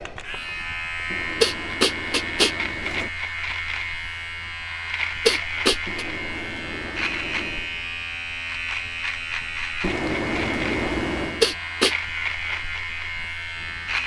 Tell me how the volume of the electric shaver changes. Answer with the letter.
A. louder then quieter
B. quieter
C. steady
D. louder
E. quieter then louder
C.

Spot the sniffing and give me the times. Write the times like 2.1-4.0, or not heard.
1.4-2.5, 5.2-6.0, 11.4-11.9.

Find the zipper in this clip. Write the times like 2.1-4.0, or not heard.
1.1-3.1, 5.8-7.7, 9.8-11.4.